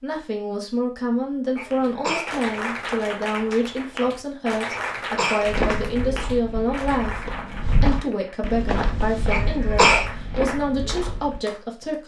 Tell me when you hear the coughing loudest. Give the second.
10 s.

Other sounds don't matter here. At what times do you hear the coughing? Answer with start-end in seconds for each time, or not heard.
1.6-2.3, 4.7-5.6, 9.3-10.1.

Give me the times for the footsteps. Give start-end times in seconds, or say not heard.
5.5-11.4.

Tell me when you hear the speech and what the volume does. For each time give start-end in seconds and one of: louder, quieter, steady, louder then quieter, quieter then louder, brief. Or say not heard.
0.0-12.0 steady.